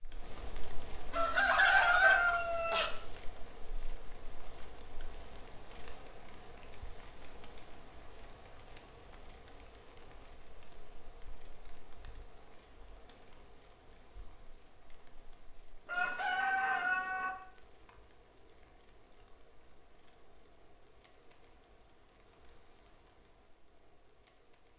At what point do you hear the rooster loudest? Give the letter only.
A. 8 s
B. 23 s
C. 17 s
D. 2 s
D.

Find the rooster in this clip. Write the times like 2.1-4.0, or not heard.
1.1-2.9, 15.8-17.3.